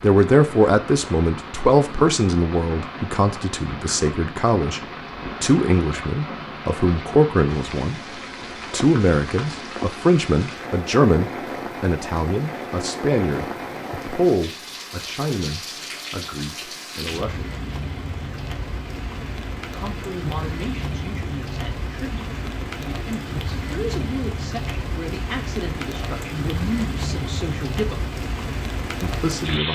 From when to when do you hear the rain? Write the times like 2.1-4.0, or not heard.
0.0-29.6.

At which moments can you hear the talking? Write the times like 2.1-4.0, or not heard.
0.0-17.5, 19.7-28.1, 29.0-29.6.